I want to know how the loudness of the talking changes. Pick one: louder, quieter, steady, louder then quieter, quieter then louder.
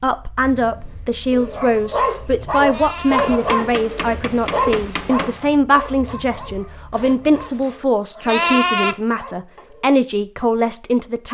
steady.